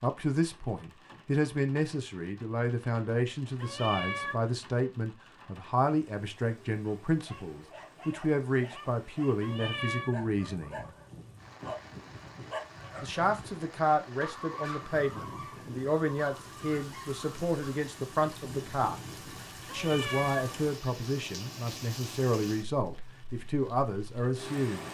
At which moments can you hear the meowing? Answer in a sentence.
The meowing can be heard from 3.6 to 4.4 s, from 9.4 to 10.2 s and from 19.6 to 20.6 s.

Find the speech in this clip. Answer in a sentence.
You can hear the speech from 0.0 to 10.9 s, from 13.0 to 19.0 s and from 19.7 to 24.8 s.